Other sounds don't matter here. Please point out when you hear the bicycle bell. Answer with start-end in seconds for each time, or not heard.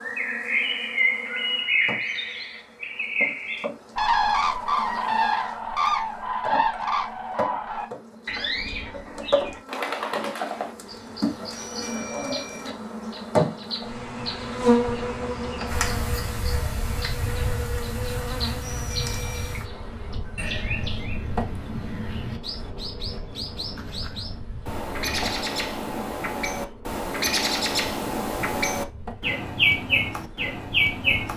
11.5-12.7, 18.8-19.6.